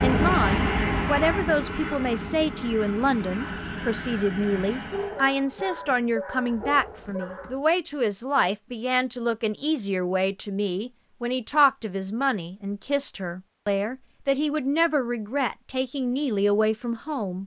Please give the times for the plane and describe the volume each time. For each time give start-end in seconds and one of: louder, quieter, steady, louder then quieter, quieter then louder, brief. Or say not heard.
0.0-5.2 quieter.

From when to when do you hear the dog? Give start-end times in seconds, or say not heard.
4.9-7.6.